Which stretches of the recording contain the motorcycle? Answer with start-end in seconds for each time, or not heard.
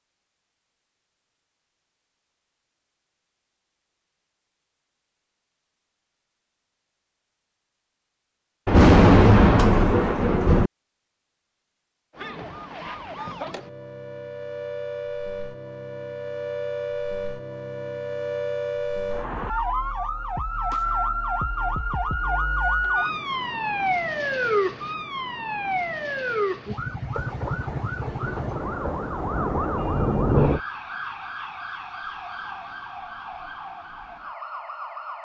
not heard.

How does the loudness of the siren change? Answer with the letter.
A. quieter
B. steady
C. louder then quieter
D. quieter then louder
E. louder
C.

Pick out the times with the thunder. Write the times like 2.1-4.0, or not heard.
8.7-10.7, 27.1-30.6.